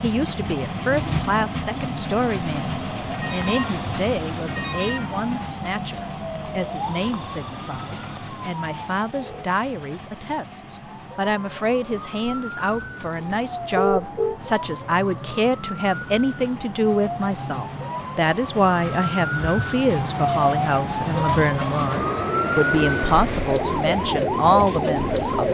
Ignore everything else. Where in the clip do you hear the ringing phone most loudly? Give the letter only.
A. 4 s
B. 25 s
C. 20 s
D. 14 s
D.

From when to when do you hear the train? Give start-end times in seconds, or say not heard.
0.0-25.5.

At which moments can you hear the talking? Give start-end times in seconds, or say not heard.
0.0-25.5.